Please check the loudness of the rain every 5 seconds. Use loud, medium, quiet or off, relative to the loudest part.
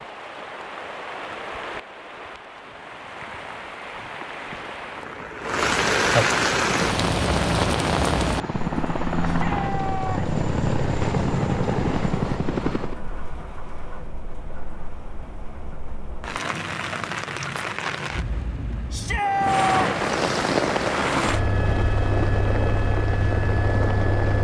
quiet, loud, quiet, medium, medium.